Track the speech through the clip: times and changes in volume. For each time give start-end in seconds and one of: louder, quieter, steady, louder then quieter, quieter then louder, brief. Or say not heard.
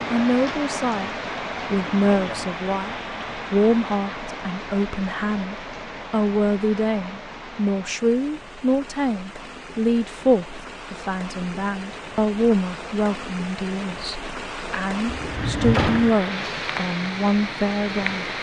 0.1-18.3 steady.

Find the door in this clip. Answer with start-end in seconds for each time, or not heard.
15.1-16.1.